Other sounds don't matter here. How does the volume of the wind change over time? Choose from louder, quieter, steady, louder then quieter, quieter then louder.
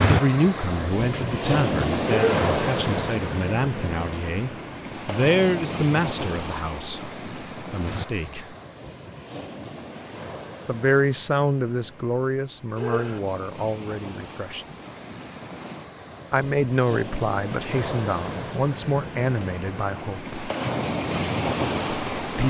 quieter then louder.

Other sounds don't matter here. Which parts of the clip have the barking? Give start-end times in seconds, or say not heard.
2.0-2.5, 12.8-13.2.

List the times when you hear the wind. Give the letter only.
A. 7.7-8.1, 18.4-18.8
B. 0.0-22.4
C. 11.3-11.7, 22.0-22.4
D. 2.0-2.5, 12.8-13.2
B.